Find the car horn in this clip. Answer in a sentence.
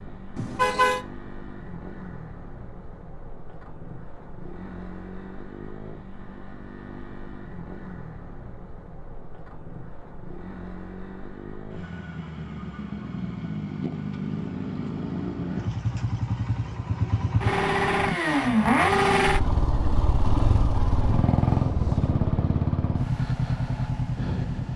The car horn can be heard from 0.3 to 1.0 s.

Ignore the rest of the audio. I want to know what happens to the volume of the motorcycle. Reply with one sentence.
The loudness of the motorcycle goes up.